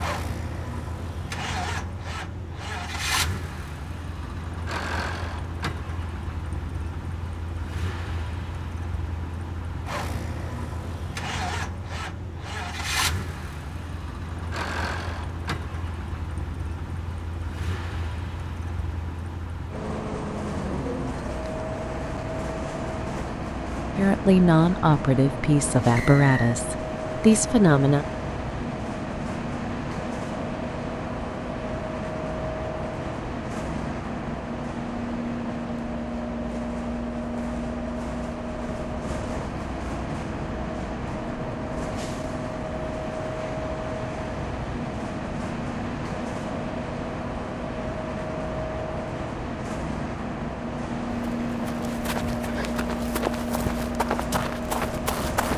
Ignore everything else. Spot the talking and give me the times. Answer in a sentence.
You can hear the talking from 23.9 to 28.1 s.